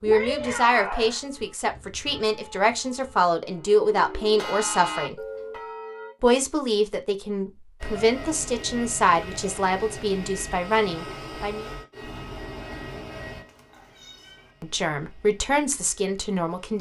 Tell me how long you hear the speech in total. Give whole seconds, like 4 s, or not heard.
13 s.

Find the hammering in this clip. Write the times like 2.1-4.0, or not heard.
not heard.